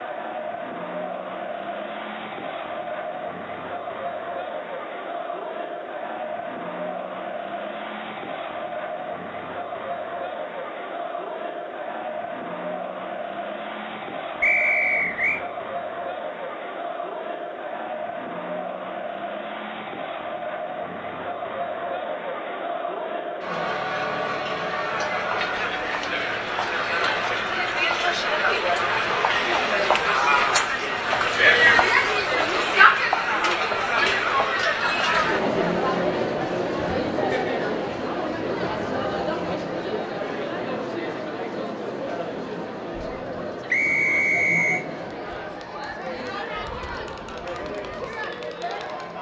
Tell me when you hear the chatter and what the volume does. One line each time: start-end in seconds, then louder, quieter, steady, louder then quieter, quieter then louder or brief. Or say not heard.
0.0-49.1 louder then quieter.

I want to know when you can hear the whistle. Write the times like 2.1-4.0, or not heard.
14.4-15.4, 43.7-44.9.